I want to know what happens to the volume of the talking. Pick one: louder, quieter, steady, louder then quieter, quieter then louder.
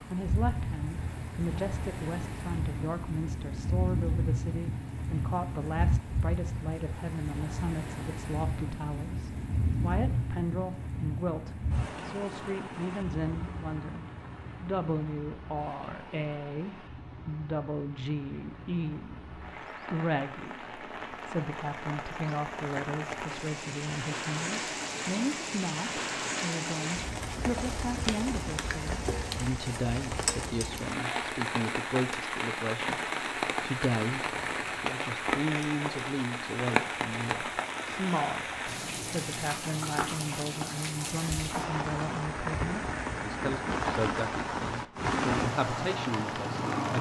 steady.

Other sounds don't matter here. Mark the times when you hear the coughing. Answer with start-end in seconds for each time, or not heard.
not heard.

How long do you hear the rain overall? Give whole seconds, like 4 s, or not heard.
47 s.